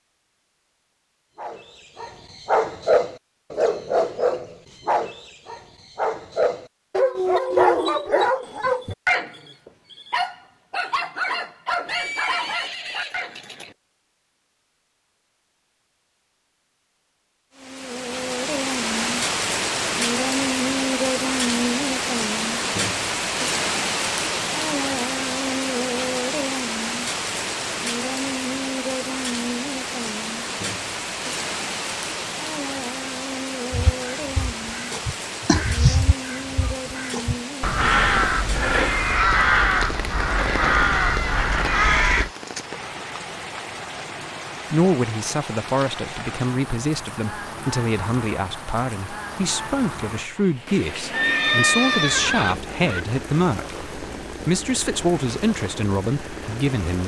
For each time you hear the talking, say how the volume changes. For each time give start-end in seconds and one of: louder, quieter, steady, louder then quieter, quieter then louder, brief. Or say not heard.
44.7-57.0 steady.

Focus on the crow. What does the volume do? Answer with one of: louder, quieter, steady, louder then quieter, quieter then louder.
louder.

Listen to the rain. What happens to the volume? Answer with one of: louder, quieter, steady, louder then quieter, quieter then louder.
quieter.